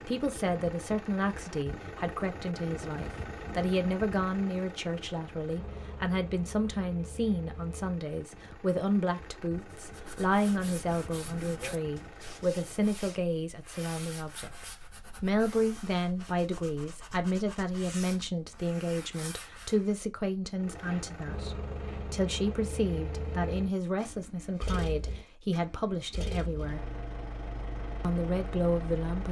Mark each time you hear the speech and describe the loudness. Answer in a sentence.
You can hear the speech from 0.1 to 26.9 s, at a steady volume; and briefly from 28.0 to 29.2 s.